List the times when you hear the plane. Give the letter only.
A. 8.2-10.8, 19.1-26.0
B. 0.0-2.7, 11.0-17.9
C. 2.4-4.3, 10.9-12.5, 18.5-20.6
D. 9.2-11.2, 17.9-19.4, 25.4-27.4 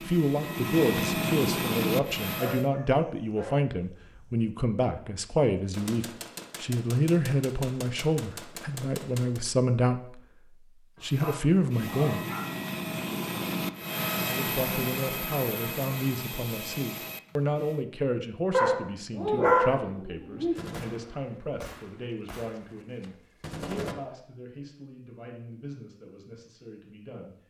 B.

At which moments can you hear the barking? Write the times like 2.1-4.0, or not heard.
2.4-4.3, 10.9-12.5, 18.5-20.6.